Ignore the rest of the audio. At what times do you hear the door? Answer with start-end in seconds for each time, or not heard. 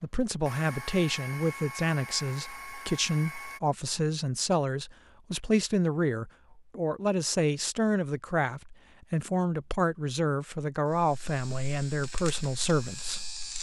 not heard.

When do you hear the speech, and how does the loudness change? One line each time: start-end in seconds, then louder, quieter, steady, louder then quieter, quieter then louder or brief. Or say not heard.
0.0-13.2 steady.